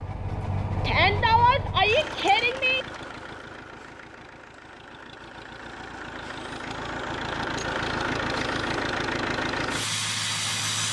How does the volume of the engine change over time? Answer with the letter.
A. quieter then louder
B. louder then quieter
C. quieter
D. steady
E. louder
A.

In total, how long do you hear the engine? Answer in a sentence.
You can hear the engine for 11 seconds altogether.